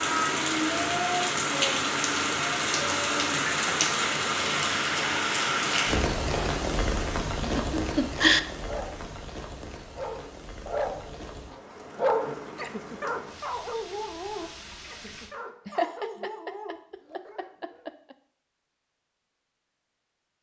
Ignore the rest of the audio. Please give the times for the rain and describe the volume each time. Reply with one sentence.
You can hear the rain from 0.0 to 15.3 s, getting quieter.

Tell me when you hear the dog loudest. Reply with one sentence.
The volume of the dog peaks at 12 seconds.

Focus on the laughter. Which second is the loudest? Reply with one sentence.
The loudest moment of the laughter is at 8 seconds.